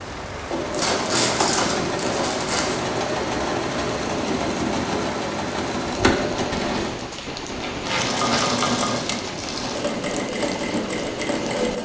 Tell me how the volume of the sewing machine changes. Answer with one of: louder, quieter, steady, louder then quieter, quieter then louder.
steady.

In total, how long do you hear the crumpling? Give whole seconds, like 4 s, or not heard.
4 s.